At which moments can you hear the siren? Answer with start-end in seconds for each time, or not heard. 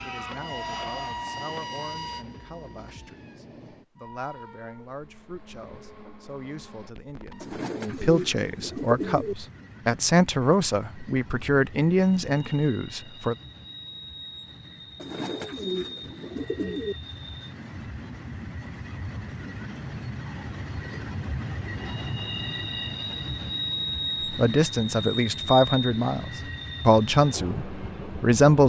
0.0-3.4.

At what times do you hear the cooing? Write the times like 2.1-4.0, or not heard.
7.4-9.3, 14.9-16.9.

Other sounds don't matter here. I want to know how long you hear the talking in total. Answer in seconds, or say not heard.
17 s.